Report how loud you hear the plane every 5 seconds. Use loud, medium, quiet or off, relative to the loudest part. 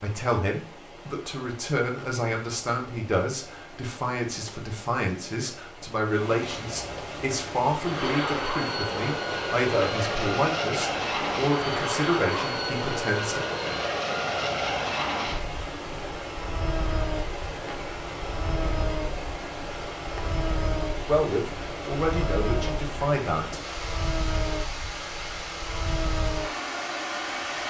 off, loud, loud, medium, medium, medium.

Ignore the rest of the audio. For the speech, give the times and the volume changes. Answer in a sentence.
The speech can be heard from 0.0 to 13.4 s, at a steady volume; and briefly from 21.1 to 23.6 s.